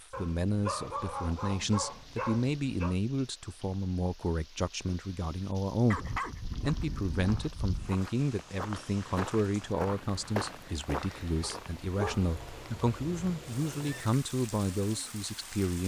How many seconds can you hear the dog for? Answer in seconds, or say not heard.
6 s.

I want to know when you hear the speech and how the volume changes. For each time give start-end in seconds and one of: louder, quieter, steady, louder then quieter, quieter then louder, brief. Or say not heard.
0.0-15.8 steady.